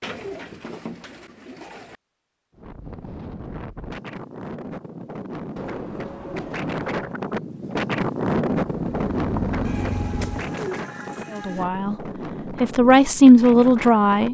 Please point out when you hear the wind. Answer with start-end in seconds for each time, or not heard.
2.5-14.2.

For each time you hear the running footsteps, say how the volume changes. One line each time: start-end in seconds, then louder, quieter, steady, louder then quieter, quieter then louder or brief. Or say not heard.
not heard.